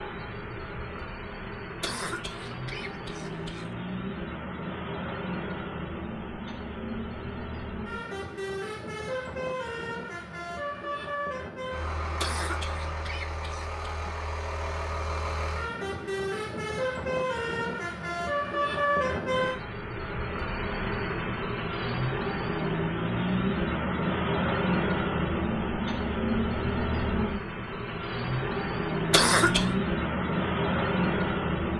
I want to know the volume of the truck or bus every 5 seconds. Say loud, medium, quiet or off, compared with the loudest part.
medium, medium, medium, loud, loud, loud, loud.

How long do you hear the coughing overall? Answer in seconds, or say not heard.
4 s.